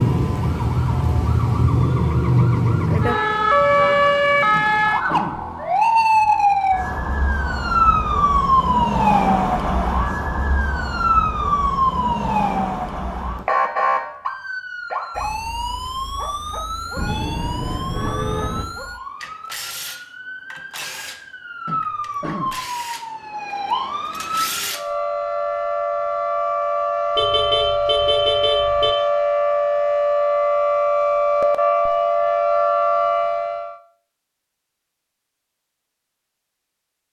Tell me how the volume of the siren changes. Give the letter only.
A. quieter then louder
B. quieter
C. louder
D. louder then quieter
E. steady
A.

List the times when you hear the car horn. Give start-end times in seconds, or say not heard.
3.1-4.3, 16.9-18.6, 27.1-28.9.